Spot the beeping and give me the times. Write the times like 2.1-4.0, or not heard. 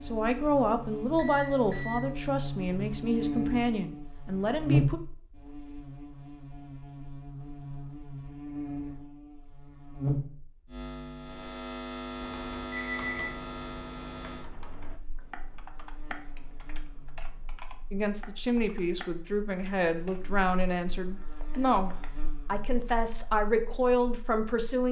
1.1-2.0, 12.7-13.3.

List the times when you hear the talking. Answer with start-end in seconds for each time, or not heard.
0.1-5.0, 17.9-24.8.